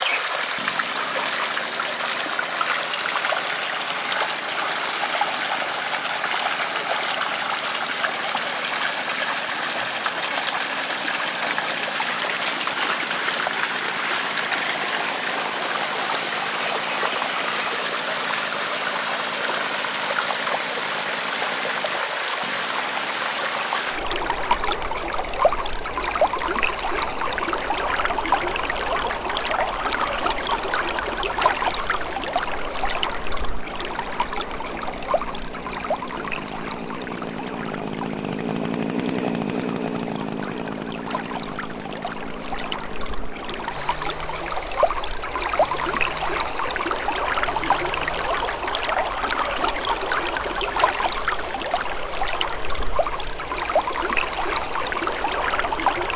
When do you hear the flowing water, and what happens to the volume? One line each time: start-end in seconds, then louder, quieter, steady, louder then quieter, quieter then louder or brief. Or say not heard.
0.0-56.1 quieter then louder.